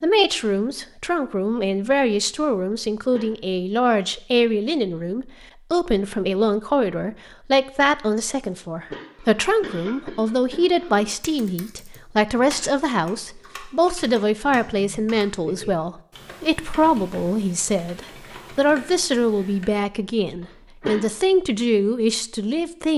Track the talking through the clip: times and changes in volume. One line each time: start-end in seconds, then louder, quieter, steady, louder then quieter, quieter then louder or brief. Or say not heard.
0.0-22.9 steady.